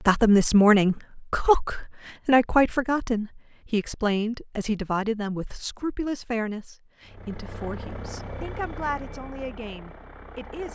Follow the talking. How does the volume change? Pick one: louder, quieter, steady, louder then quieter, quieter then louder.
quieter.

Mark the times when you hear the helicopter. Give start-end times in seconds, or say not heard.
7.0-10.7.